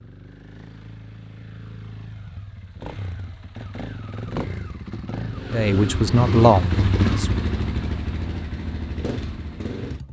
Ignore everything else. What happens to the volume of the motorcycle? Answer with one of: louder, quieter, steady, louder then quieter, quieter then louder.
louder then quieter.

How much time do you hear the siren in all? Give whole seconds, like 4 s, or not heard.
not heard.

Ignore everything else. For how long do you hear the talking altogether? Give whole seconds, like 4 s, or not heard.
2 s.